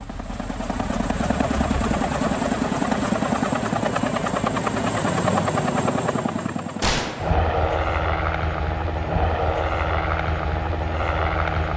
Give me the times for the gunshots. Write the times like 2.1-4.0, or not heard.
6.8-7.4.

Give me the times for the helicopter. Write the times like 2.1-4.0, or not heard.
0.0-11.7.